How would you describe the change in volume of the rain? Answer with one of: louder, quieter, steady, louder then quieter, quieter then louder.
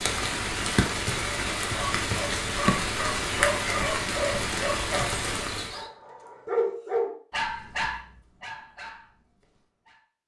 steady.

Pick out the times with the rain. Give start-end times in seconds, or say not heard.
0.0-5.8.